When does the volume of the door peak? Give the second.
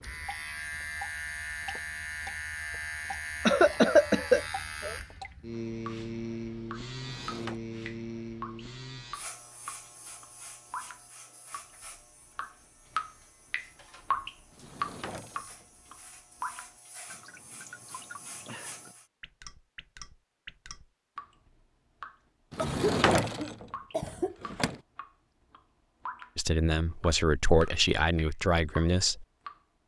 23 s.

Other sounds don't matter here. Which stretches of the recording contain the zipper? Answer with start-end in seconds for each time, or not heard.
not heard.